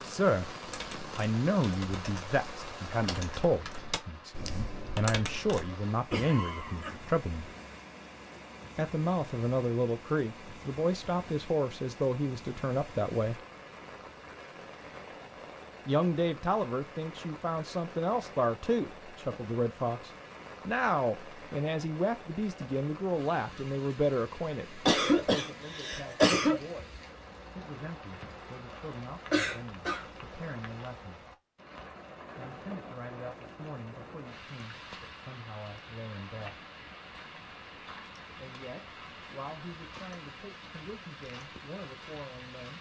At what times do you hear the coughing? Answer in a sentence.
The coughing can be heard from 6.1 to 7.0 s, from 24.9 to 26.6 s and from 29.3 to 30.1 s.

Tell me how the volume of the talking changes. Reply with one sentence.
The loudness of the talking goes down.